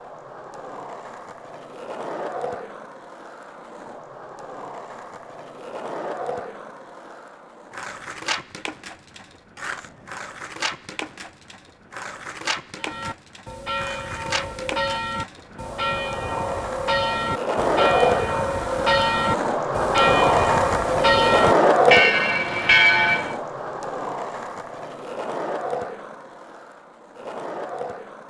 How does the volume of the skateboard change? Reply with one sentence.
The volume of the skateboard goes up, then down.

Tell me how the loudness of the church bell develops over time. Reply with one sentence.
The loudness of the church bell goes up.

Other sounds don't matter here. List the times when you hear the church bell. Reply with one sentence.
The church bell can be heard from 12.8 to 23.4 s.